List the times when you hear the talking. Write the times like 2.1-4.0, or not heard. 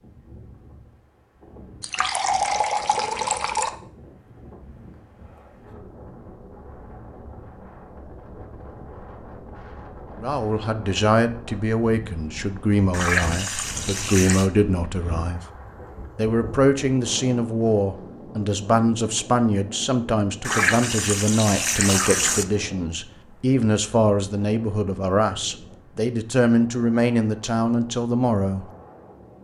10.2-15.4, 16.1-28.6.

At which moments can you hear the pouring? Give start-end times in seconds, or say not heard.
1.8-3.7, 12.9-14.5, 20.4-22.4.